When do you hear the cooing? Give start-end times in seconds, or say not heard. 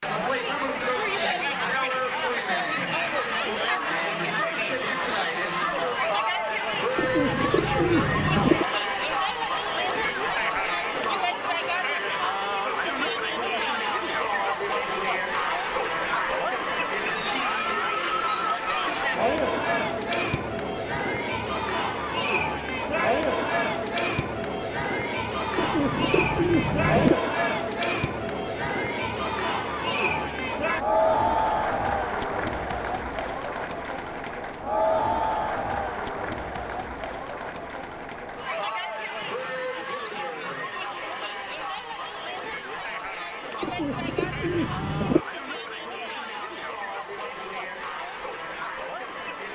7.0-8.7, 25.6-27.1, 43.6-45.2.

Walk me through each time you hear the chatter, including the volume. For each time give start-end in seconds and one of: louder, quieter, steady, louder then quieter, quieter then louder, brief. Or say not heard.
0.0-49.4 quieter.